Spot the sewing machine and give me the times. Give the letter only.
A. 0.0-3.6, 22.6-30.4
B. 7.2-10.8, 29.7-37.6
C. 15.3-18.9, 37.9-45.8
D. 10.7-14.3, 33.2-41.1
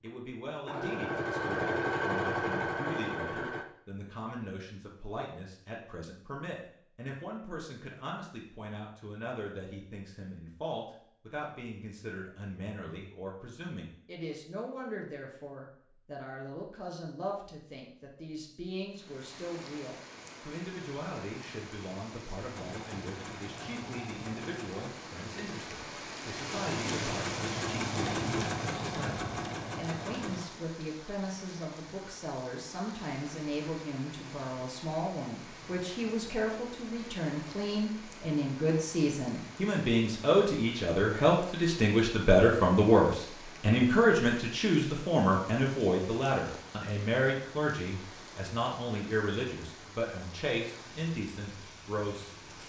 A.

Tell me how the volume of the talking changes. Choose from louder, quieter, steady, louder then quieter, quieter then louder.
louder.